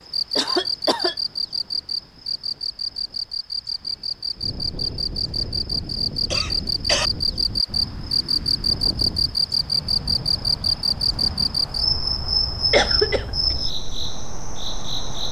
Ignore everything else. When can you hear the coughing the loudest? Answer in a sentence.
The volume of the coughing peaks at 13 seconds.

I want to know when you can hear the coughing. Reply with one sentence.
The coughing can be heard from 0.3 to 1.1 s, from 6.2 to 7.1 s and from 12.7 to 13.3 s.